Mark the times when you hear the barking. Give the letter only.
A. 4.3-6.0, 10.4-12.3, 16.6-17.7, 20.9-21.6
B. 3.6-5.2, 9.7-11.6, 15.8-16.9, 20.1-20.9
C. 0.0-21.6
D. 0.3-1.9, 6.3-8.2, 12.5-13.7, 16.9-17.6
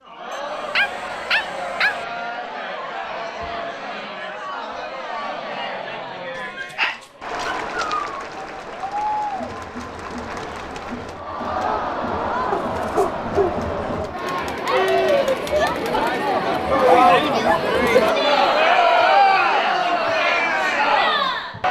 D.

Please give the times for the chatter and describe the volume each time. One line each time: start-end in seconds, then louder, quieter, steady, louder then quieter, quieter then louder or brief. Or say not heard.
0.0-21.6 louder.